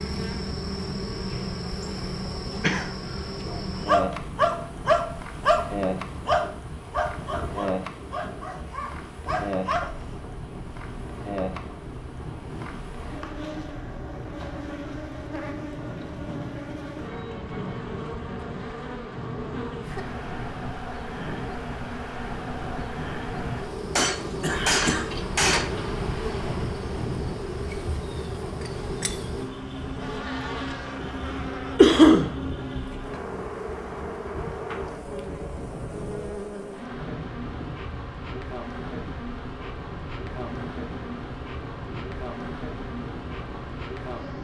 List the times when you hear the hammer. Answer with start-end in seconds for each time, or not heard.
23.9-25.9.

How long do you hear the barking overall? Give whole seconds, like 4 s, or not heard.
7 s.